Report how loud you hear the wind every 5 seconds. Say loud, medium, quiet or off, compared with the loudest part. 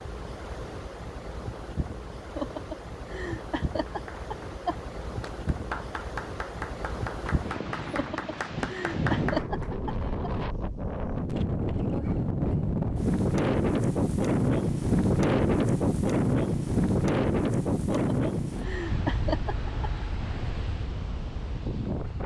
quiet, medium, loud, loud, medium.